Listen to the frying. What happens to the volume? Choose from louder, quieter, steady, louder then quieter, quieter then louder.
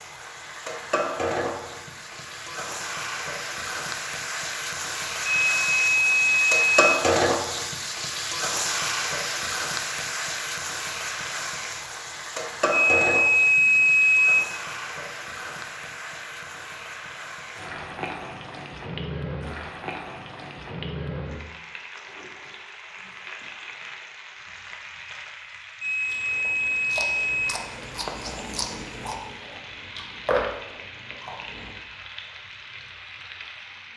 quieter.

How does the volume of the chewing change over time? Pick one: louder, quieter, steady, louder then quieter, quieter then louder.
louder.